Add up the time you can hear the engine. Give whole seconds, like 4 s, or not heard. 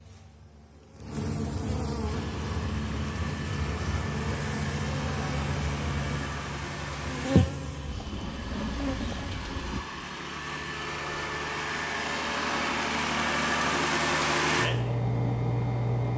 14 s.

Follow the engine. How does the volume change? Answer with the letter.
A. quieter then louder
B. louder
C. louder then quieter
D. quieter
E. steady
B.